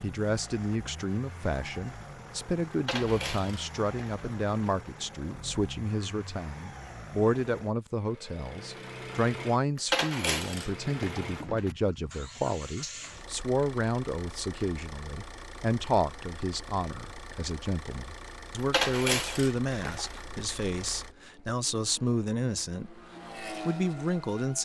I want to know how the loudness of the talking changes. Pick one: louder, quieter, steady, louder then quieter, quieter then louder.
steady.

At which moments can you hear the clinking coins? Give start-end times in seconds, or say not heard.
2.7-4.7, 9.8-11.8, 18.6-20.2.